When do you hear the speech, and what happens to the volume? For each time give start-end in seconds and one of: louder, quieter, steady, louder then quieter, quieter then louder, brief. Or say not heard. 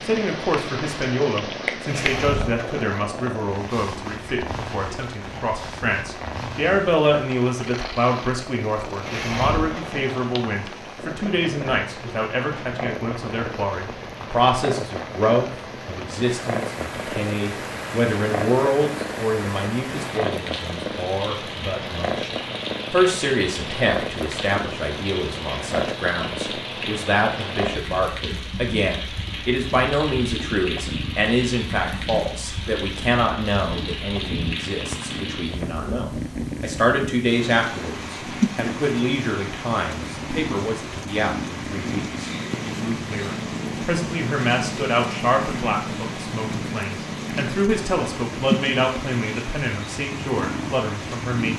0.0-51.5 steady.